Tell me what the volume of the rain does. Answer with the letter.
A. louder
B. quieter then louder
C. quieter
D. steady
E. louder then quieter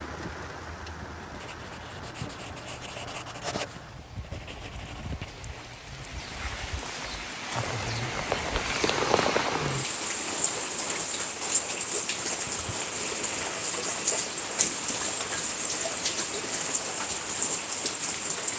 A.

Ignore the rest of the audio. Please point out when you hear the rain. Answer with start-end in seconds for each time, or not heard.
0.0-18.5.